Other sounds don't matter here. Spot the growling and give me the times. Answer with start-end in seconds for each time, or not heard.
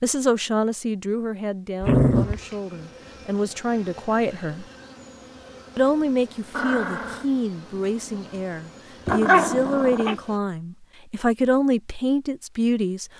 1.8-2.4, 6.5-7.2, 9.1-10.2.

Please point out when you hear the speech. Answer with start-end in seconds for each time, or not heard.
0.0-4.7, 5.8-13.1.